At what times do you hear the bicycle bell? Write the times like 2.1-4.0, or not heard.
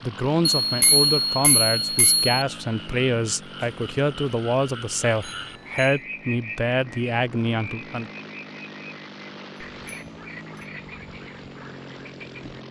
0.6-2.2, 5.2-6.0, 9.8-10.7.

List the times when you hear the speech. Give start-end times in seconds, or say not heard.
0.0-8.1.